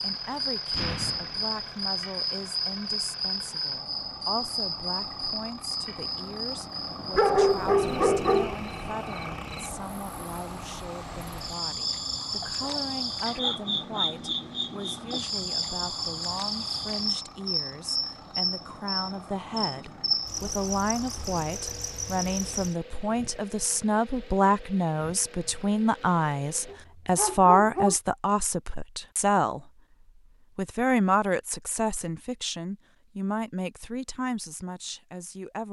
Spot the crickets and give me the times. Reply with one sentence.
The crickets can be heard from 0.0 to 22.8 s.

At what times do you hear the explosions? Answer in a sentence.
The explosions can be heard from 0.7 to 1.6 s.